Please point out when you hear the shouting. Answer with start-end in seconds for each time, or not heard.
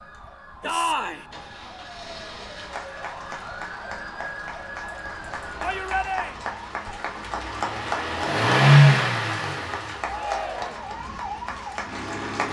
0.6-1.2, 5.6-6.3, 10.0-10.9.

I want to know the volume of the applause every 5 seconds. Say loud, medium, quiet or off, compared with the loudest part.
medium, loud, loud.